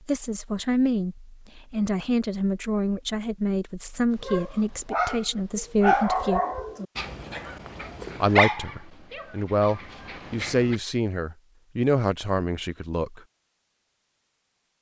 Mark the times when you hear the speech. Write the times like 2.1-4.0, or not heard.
0.1-6.4, 8.2-13.2.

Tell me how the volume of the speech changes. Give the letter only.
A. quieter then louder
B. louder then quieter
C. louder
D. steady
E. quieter
D.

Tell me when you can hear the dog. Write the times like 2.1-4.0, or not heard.
4.2-10.8.